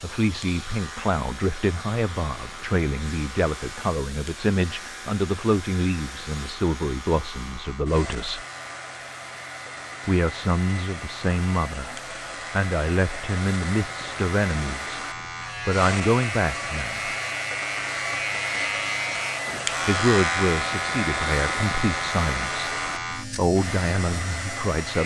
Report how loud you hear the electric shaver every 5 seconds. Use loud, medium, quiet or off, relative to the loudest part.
quiet, quiet, medium, loud, loud.